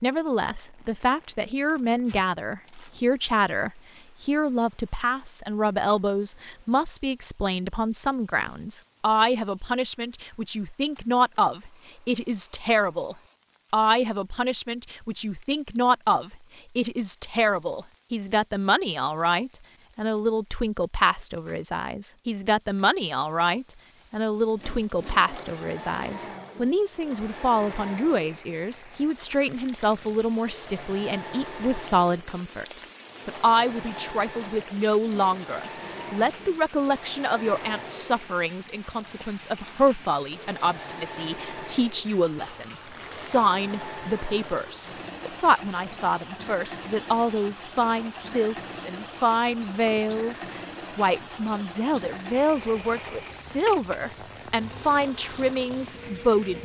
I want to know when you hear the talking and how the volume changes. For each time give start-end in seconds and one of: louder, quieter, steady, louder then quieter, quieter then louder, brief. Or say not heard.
0.0-56.5 steady.